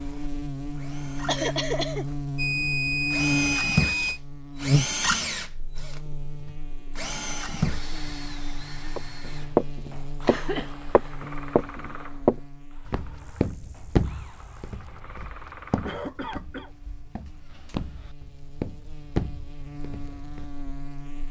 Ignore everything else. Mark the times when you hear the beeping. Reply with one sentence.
You can hear the beeping from 2.4 to 4.2 s.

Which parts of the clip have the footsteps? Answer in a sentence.
The footsteps can be heard from 8.9 to 20.6 s.